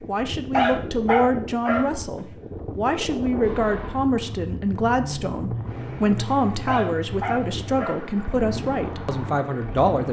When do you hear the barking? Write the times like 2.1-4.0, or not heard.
0.5-1.9, 6.7-8.0.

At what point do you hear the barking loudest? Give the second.
1 s.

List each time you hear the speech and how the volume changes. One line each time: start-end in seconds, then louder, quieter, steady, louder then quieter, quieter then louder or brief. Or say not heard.
0.1-10.0 steady.